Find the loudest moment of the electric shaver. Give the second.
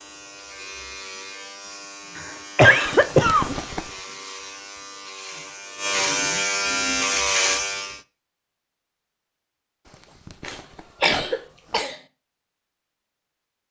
7 s.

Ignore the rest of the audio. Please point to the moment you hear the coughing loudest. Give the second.
3 s.